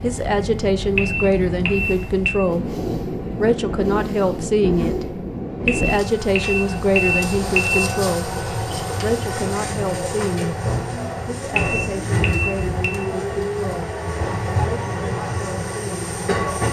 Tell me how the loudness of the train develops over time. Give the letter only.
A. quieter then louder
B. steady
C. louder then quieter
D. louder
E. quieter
B.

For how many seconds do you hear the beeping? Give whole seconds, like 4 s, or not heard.
5 s.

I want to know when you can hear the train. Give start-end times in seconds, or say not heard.
0.0-16.6.